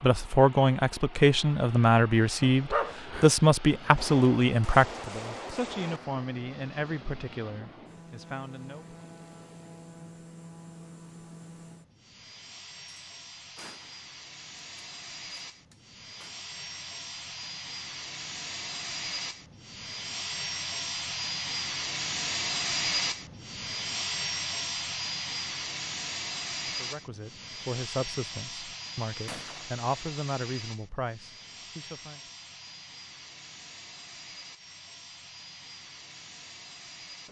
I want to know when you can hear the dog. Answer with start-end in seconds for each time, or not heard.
2.4-4.0.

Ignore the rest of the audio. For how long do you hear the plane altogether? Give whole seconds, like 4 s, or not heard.
37 s.